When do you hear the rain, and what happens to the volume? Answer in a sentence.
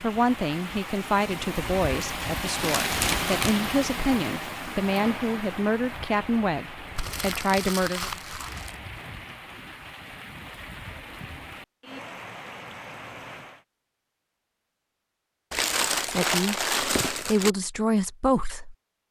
The rain can be heard from 0.0 to 13.7 s, getting quieter.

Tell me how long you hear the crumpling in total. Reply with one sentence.
You can hear the crumpling for 5 seconds altogether.